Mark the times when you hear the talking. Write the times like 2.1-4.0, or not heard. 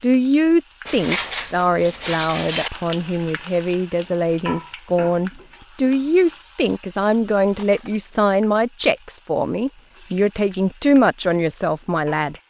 0.0-12.3.